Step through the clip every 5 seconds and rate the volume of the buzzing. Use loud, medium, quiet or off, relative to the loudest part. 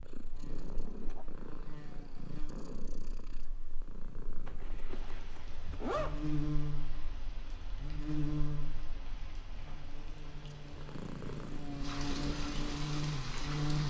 quiet, loud, loud.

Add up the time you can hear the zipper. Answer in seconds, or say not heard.
2 s.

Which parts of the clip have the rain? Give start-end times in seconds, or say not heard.
4.8-13.8.